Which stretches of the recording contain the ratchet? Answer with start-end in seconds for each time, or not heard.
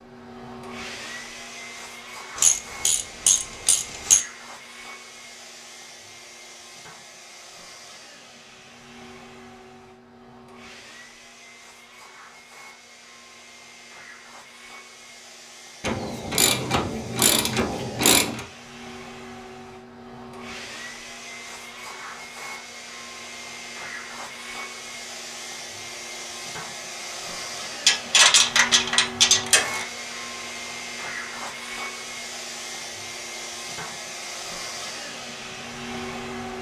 2.4-4.2, 15.8-18.4, 27.9-29.9.